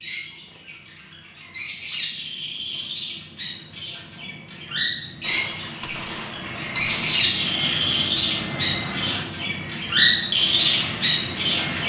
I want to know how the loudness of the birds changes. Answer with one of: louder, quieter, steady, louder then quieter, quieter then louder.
louder.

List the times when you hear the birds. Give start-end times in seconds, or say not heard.
0.0-11.8.